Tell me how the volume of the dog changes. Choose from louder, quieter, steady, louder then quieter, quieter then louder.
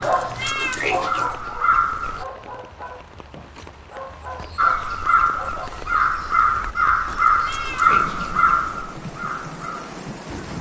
quieter.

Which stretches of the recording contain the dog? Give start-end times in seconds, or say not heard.
0.0-5.8.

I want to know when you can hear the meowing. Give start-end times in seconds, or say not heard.
0.0-1.5, 7.0-8.8.